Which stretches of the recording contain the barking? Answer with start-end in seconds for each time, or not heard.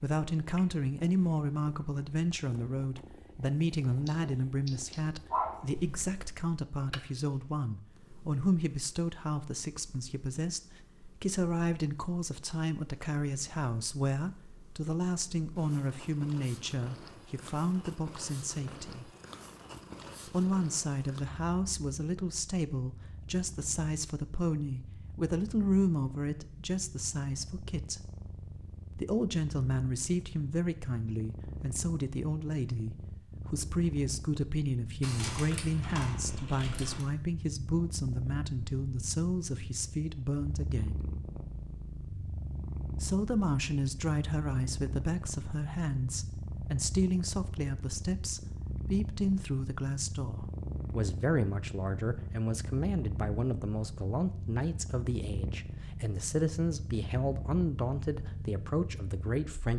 4.0-6.4.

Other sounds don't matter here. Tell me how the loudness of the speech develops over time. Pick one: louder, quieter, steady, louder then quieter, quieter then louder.
steady.